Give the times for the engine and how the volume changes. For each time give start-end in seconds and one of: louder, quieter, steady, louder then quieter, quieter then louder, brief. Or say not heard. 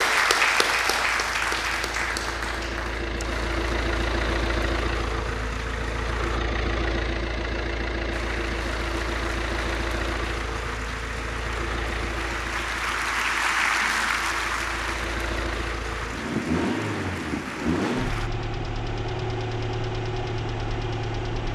0.0-21.4 steady.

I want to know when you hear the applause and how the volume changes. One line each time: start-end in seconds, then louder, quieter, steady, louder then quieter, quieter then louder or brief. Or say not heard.
0.0-6.4 quieter
8.1-18.3 louder then quieter.